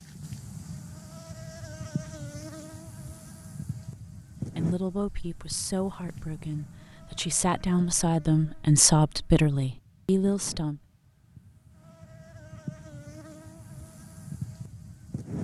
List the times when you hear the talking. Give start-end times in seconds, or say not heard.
4.5-10.8.